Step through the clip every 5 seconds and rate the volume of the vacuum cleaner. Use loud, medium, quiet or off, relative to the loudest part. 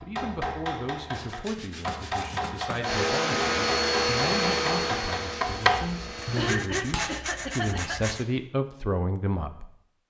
loud, medium.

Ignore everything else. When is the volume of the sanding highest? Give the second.
7 s.